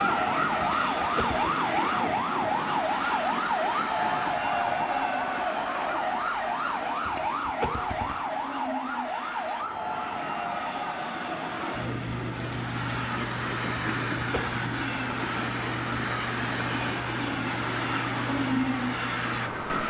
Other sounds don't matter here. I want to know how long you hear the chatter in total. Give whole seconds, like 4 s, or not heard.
not heard.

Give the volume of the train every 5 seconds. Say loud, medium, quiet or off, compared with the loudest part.
loud, medium, loud, loud.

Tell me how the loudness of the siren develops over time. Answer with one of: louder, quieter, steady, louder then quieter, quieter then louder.
quieter.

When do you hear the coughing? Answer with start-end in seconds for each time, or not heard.
0.6-1.5, 7.0-8.2, 13.8-14.5.